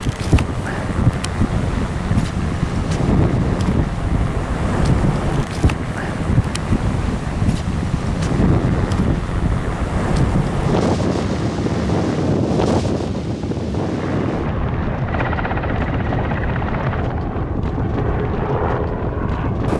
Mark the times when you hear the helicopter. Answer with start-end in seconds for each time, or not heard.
0.0-12.3, 13.8-19.7.